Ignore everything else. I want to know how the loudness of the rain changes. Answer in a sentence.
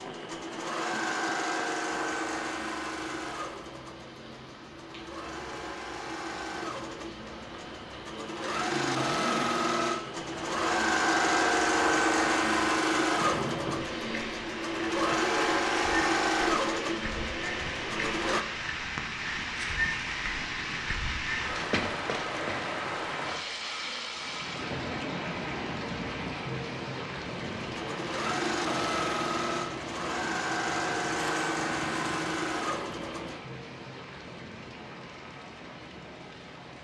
The volume of the rain goes up, then down.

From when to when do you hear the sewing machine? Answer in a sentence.
You can hear the sewing machine from 0.0 to 18.4 s and from 27.4 to 33.4 s.